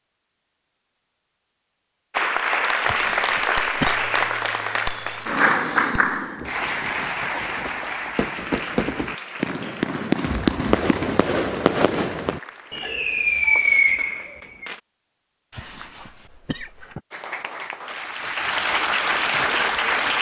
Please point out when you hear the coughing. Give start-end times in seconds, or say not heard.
2.8-4.0, 15.5-17.0.